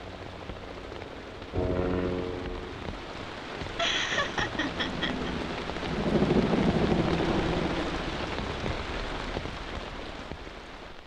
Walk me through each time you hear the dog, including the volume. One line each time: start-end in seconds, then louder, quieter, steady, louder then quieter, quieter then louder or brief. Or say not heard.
not heard.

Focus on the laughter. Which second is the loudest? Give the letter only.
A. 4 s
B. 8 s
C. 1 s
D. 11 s
A.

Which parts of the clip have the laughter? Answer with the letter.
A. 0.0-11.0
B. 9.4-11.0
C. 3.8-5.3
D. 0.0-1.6
C.